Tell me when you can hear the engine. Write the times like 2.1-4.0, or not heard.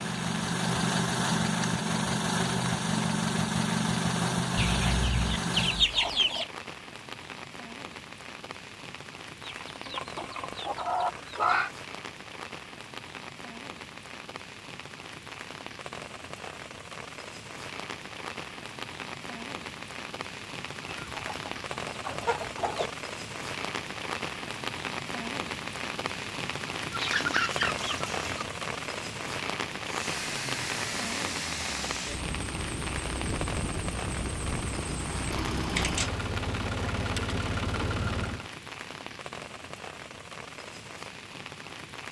0.0-5.8, 29.8-38.5.